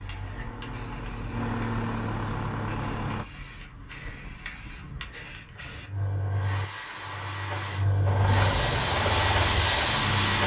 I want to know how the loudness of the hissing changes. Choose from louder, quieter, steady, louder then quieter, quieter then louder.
louder.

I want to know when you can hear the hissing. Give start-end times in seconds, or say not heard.
0.0-10.4.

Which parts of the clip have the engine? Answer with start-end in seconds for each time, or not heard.
0.0-3.2, 8.1-10.4.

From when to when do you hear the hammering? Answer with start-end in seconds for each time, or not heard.
not heard.